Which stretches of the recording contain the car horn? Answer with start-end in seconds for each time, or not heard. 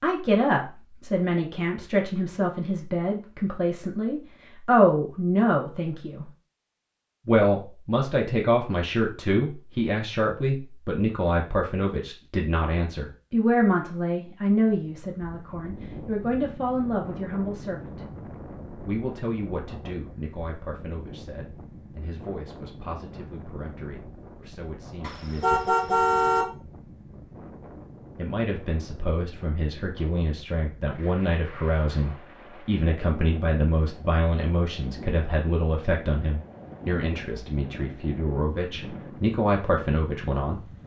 25.0-26.4.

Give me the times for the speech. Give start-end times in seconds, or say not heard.
0.0-6.3, 7.2-18.0, 18.9-25.7, 28.1-40.6.